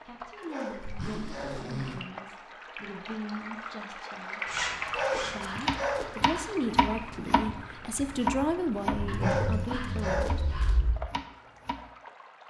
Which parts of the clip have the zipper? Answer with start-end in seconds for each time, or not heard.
0.8-2.0, 4.5-5.7, 8.9-10.9.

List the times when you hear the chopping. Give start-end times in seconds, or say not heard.
5.4-11.9.